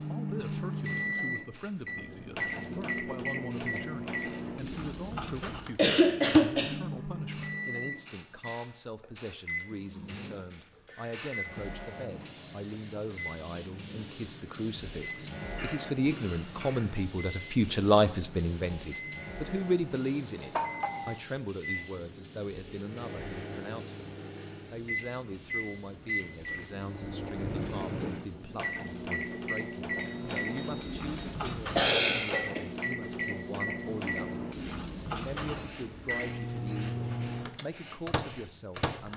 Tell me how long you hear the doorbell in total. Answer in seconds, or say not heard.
3 s.